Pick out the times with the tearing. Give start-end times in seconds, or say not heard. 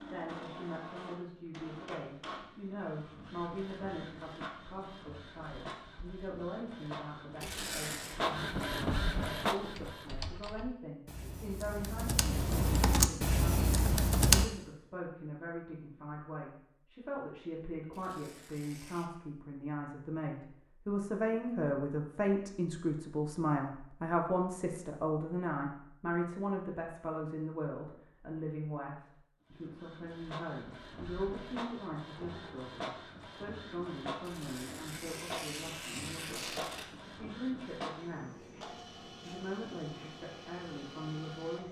7.4-8.2, 17.9-19.1, 34.2-36.9.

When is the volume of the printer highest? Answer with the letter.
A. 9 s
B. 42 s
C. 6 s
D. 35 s
A.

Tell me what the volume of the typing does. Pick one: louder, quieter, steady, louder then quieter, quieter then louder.
louder.